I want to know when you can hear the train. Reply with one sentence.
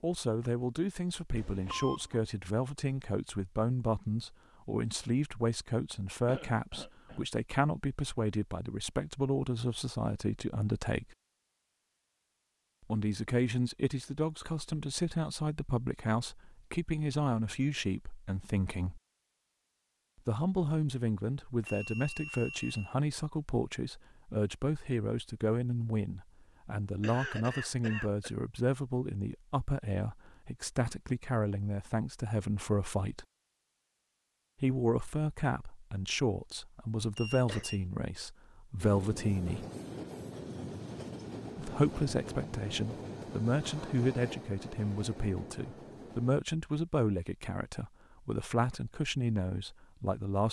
The train can be heard from 38.8 to 46.4 s.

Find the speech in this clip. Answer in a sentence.
The speech can be heard from 0.0 to 11.2 s, from 12.9 to 19.0 s, from 20.2 to 33.2 s, from 34.6 to 39.6 s and from 41.5 to 50.4 s.